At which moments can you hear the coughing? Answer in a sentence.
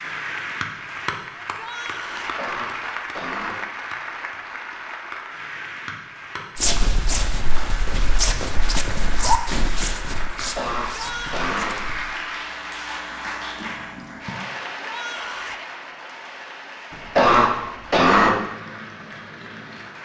The coughing can be heard from 2.1 to 3.6 s, from 10.6 to 11.8 s and from 16.9 to 18.4 s.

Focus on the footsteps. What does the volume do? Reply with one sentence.
The volume of the footsteps goes up, then down.